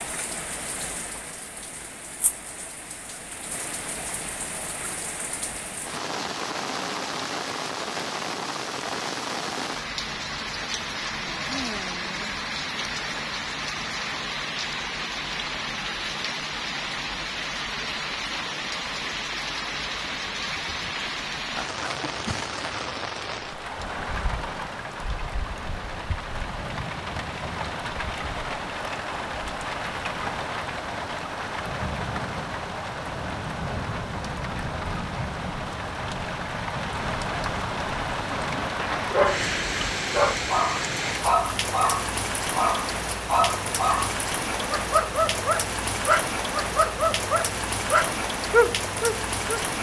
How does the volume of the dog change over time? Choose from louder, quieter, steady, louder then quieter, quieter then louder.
steady.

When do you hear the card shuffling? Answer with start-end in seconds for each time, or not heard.
not heard.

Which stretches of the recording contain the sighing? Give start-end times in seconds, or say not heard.
11.4-12.3.